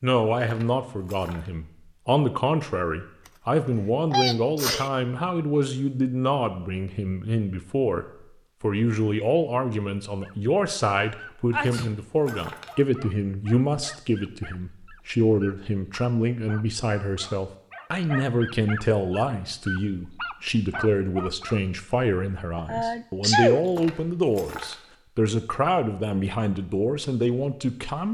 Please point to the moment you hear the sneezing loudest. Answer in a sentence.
The loudest moment of the sneezing is at 23 seconds.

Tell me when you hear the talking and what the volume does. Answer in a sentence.
You can hear the talking from 0.0 to 28.0 s, at a steady volume.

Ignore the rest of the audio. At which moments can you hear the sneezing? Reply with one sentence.
You can hear the sneezing from 3.6 to 4.9 s, from 11.5 to 11.9 s and from 22.6 to 23.6 s.